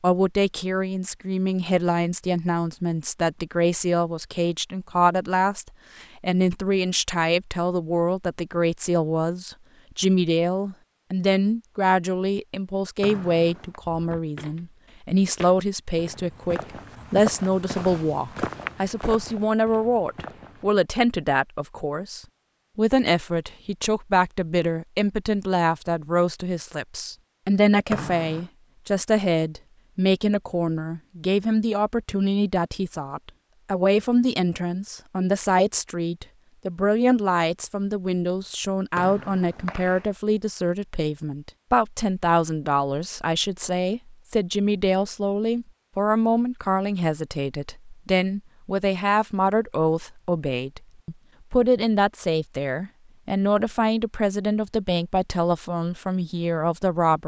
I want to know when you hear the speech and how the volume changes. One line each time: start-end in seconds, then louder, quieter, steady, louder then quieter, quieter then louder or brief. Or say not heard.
0.0-57.2 steady.